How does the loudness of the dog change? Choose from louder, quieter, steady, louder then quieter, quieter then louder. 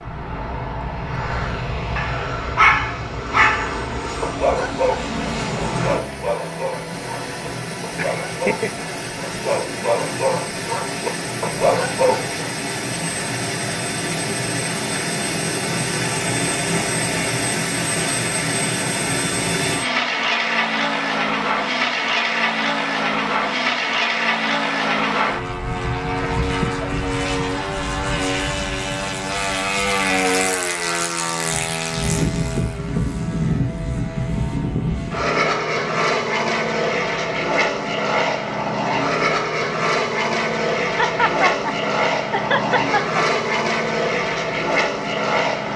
quieter then louder.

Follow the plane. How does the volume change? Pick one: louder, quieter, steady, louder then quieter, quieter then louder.
louder.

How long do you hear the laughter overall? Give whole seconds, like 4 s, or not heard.
3 s.